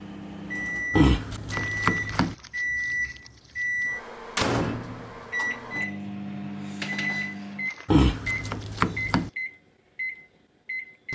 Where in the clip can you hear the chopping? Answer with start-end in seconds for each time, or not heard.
0.9-2.4, 7.8-9.3.